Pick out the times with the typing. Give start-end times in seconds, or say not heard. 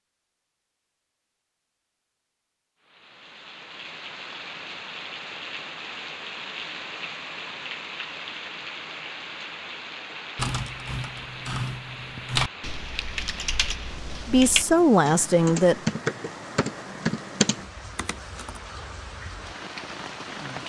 10.3-18.6.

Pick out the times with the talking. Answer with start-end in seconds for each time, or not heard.
14.2-15.8.